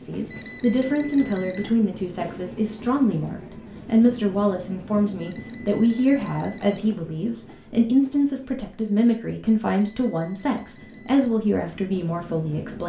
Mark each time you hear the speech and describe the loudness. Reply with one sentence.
You can hear the speech from 0.0 to 12.8 s, at a steady volume.